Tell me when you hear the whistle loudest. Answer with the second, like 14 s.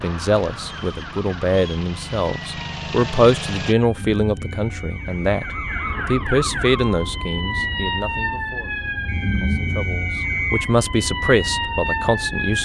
10 s.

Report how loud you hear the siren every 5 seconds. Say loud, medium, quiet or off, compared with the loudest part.
medium, loud, loud.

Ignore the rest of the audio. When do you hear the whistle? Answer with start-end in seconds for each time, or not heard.
0.7-1.8, 4.5-6.0, 9.1-10.8.